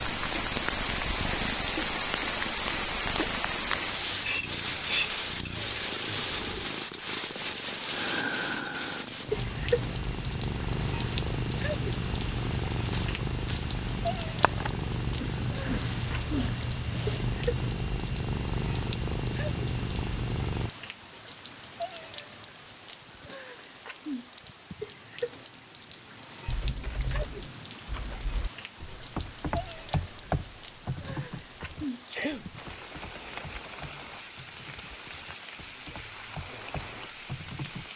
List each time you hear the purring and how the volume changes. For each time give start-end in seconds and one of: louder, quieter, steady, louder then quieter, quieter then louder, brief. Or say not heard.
0.0-20.7 louder.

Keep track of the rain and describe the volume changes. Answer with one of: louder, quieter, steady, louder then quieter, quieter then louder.
quieter.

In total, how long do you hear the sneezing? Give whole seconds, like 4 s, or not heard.
4 s.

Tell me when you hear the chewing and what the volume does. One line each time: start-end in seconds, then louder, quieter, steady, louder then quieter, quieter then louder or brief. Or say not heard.
not heard.